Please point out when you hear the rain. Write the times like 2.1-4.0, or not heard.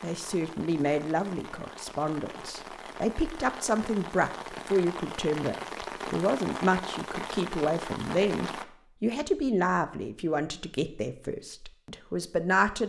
0.0-8.7.